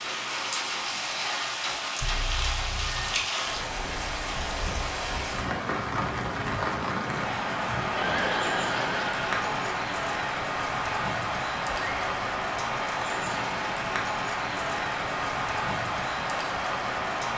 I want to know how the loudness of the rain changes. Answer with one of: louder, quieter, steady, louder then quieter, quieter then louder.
steady.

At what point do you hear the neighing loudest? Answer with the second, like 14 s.
8 s.